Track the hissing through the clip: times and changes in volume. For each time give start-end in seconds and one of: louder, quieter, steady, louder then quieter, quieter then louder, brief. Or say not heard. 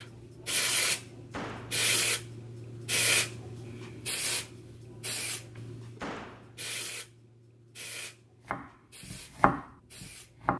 0.0-10.5 quieter.